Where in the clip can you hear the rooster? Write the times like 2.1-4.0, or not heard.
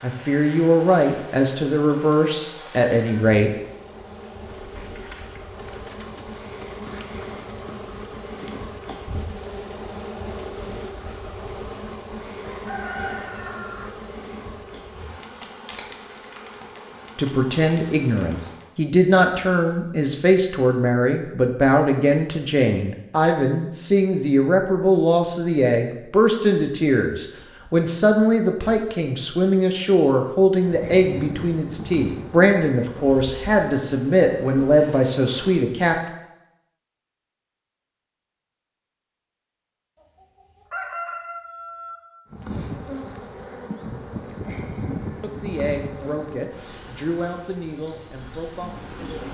12.4-13.9, 40.0-42.0.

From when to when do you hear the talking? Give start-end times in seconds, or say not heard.
0.0-3.5, 17.1-36.0, 45.2-49.2.